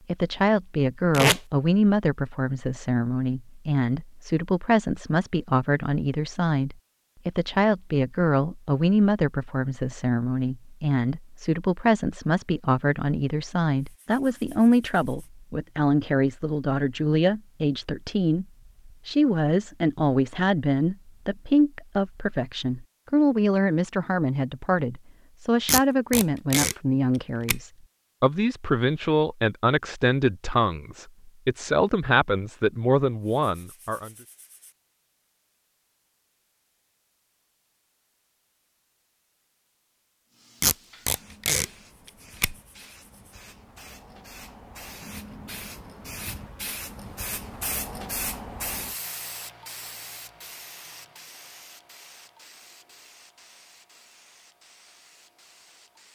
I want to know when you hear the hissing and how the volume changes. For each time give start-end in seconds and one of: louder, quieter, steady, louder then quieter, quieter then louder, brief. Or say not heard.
40.3-56.0 louder then quieter.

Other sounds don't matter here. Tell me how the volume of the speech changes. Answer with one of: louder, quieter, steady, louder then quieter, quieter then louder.
steady.